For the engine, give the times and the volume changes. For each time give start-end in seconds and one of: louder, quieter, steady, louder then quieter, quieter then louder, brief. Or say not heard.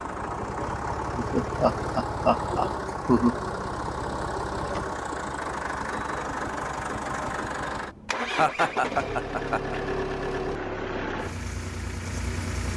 0.0-12.7 steady.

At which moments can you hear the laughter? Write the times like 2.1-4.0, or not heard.
1.1-3.4, 8.3-9.8.